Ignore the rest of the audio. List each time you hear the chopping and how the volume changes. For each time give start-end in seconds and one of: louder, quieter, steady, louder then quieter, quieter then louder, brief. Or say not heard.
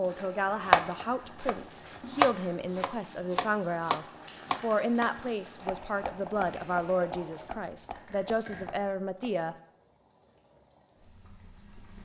0.6-9.4 quieter.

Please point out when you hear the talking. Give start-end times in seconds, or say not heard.
0.0-9.6.